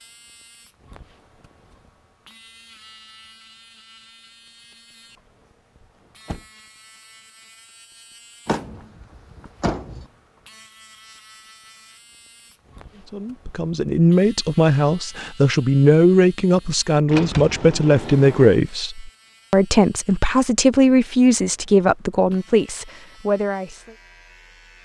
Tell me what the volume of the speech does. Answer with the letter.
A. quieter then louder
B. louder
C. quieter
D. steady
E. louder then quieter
D.